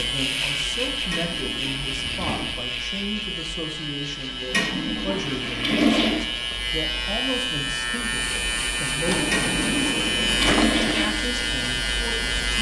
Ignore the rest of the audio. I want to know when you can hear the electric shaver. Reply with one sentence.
You can hear the electric shaver from 0.0 to 12.5 s.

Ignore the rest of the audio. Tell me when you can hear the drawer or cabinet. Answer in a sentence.
You can hear the drawer or cabinet from 1.9 to 2.6 s, from 6.3 to 6.7 s and from 9.1 to 10.8 s.